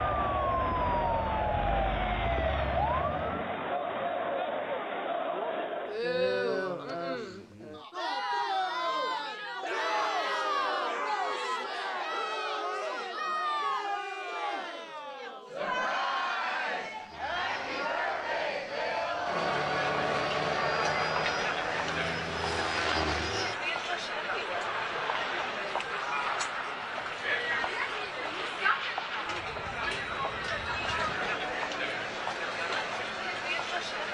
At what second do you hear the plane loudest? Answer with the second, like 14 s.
23 s.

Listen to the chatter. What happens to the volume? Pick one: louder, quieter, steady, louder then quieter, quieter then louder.
steady.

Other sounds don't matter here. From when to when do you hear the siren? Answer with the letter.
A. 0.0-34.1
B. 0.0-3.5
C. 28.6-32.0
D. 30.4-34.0
B.